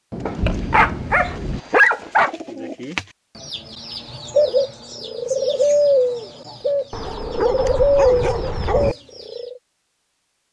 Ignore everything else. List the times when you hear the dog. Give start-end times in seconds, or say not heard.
0.2-2.4, 6.9-8.9.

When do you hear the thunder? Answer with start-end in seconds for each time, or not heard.
0.1-1.6.